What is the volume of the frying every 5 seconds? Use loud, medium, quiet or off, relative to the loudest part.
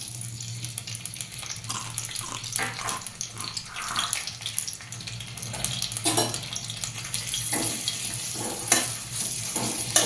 medium, loud.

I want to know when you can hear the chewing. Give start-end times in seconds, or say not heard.
1.6-4.1.